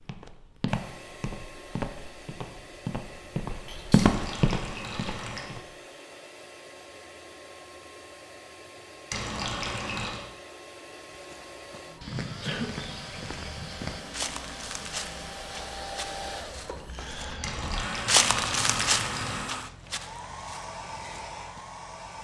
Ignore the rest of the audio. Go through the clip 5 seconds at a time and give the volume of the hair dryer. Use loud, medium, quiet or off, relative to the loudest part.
medium, medium, medium, loud, loud.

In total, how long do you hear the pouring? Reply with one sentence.
The pouring can be heard for 5 seconds in total.